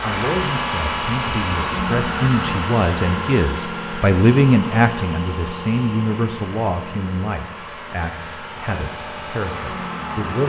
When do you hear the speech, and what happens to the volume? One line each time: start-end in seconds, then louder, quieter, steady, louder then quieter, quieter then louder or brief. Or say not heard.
0.0-10.4 louder then quieter.